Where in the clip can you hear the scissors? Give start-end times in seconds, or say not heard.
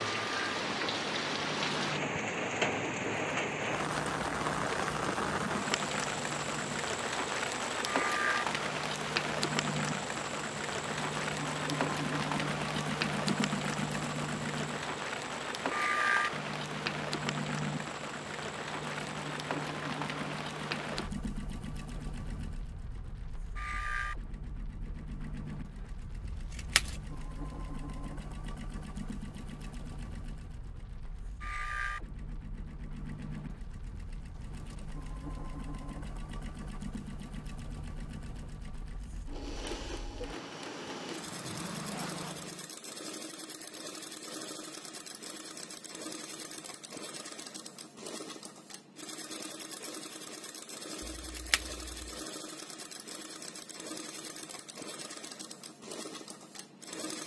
26.2-27.0, 51.0-51.9.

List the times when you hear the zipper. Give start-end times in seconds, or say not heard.
41.2-42.5.